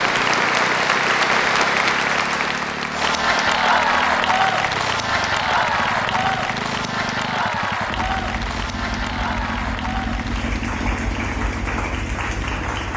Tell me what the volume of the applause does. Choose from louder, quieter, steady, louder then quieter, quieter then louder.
quieter.